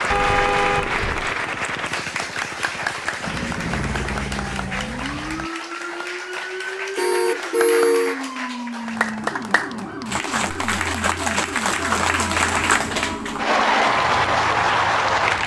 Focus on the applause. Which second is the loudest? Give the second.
14 s.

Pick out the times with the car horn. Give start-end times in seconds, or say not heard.
0.1-1.4, 7.0-8.2, 10.4-13.2.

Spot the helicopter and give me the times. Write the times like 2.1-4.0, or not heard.
0.0-5.5.